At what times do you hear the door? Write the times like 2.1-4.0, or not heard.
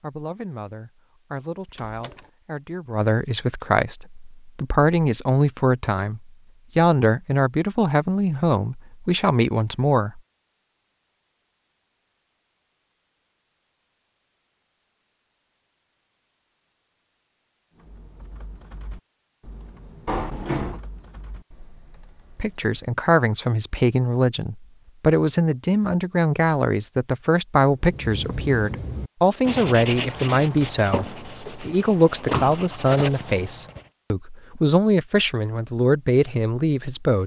1.6-2.3, 20.1-20.8, 30.9-32.5.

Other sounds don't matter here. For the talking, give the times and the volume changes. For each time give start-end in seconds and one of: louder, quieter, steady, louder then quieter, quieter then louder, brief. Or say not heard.
0.0-10.2 louder
22.4-37.2 steady.